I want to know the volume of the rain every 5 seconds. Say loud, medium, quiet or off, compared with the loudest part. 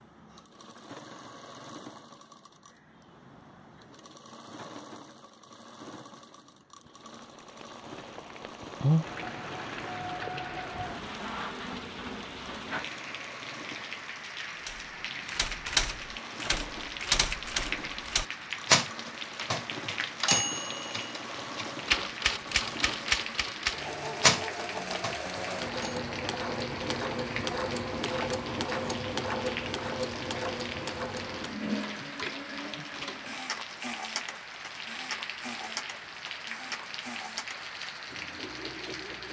off, loud, medium, medium, medium, medium, medium, medium.